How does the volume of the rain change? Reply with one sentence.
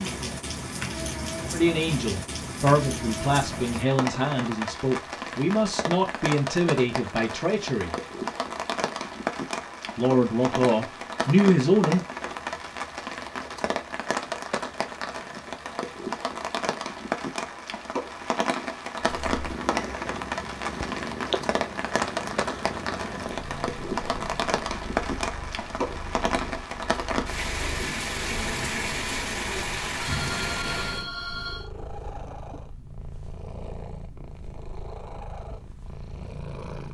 The loudness of the rain stays about the same.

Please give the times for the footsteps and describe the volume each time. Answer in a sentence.
The footsteps can't be heard in this clip.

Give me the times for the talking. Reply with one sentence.
You can hear the talking from 1.5 to 8.0 s and from 9.9 to 12.0 s.